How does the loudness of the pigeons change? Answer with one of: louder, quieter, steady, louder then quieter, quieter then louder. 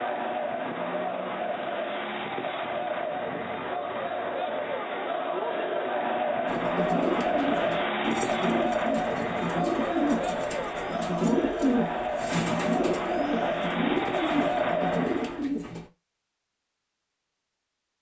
steady.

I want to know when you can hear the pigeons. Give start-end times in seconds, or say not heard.
6.5-15.9.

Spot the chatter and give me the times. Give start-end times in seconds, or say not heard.
0.0-15.4.